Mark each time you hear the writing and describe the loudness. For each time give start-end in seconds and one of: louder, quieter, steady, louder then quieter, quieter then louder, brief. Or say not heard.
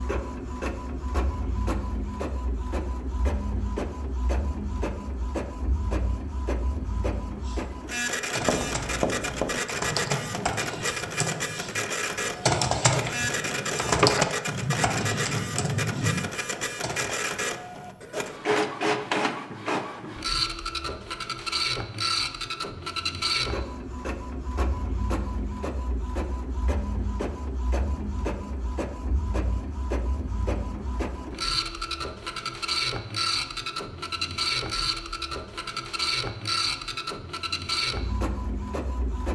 8.3-16.3 quieter then louder.